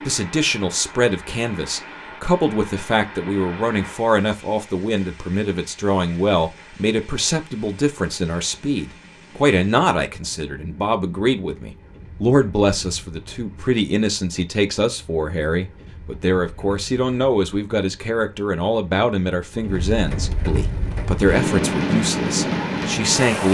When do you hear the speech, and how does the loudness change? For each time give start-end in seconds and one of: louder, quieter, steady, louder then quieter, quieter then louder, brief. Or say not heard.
0.1-23.4 steady.